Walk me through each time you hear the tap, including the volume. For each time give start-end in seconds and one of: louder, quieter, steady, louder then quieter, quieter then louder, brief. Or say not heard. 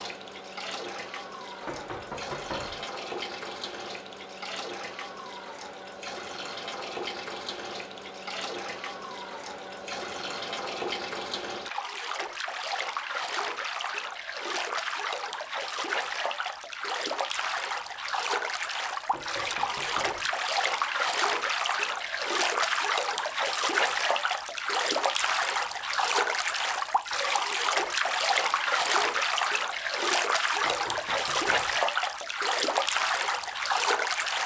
0.0-34.4 louder.